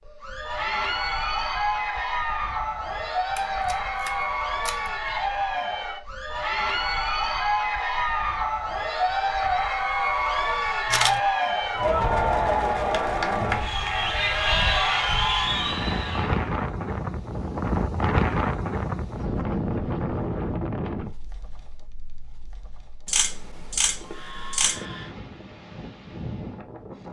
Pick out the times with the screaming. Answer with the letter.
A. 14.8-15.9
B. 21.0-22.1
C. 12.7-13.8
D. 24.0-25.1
D.